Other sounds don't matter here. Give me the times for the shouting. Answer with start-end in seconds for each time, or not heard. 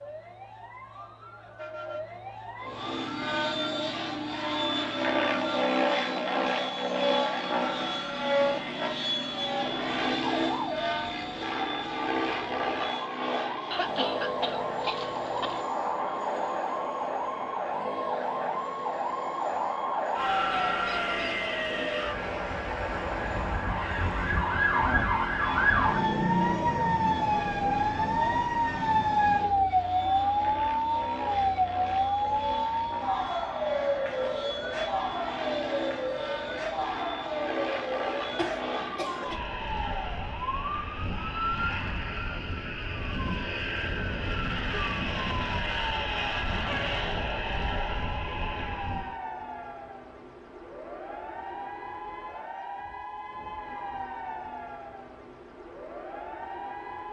not heard.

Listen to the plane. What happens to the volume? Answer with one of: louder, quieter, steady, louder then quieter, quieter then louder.
quieter then louder.